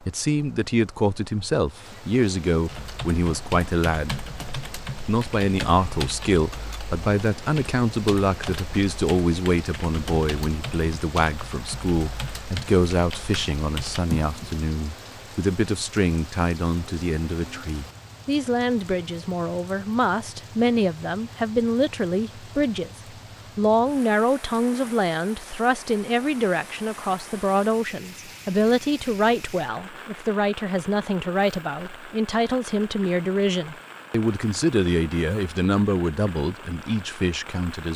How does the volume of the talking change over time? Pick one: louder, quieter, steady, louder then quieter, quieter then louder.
steady.